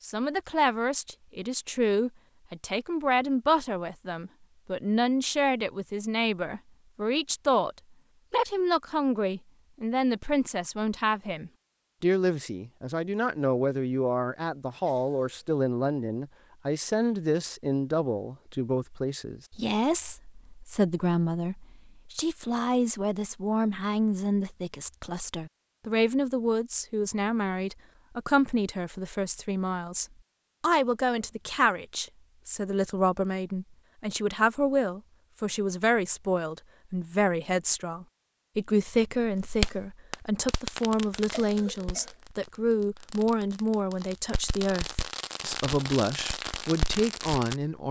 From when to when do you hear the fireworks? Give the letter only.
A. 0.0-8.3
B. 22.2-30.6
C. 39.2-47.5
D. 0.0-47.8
C.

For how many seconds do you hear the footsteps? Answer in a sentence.
The footsteps can't be heard in this clip.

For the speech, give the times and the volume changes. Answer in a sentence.
You can hear the speech from 0.0 to 47.8 s, at a steady volume.